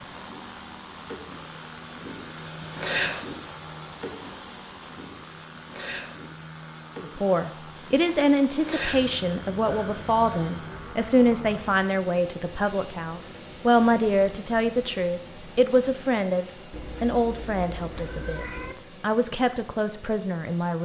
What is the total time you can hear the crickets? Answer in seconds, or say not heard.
12 s.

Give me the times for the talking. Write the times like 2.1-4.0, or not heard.
7.0-20.8.